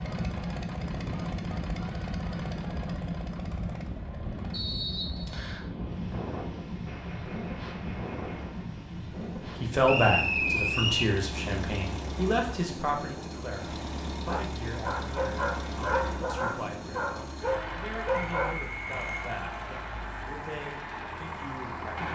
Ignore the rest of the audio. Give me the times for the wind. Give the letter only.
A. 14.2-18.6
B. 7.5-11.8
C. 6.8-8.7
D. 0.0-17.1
D.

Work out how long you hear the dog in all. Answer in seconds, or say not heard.
4 s.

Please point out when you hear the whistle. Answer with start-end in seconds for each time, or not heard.
4.5-5.7, 9.8-11.2, 18.4-19.2.